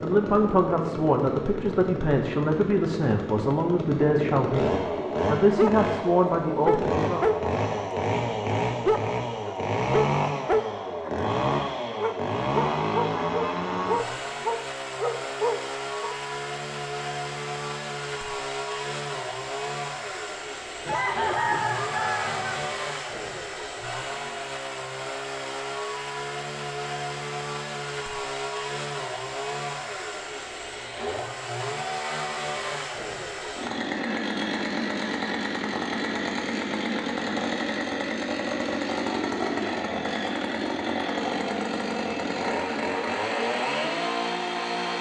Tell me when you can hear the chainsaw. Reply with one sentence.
The chainsaw can be heard from 0.0 to 44.9 s.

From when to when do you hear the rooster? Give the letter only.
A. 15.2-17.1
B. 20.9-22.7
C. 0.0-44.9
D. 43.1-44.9
B.